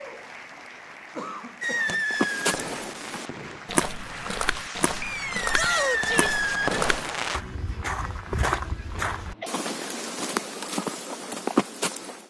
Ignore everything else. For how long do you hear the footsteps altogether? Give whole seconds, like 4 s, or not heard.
10 s.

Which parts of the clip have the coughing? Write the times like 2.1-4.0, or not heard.
1.1-2.0, 8.4-9.8.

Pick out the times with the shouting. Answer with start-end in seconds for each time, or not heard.
5.5-6.4.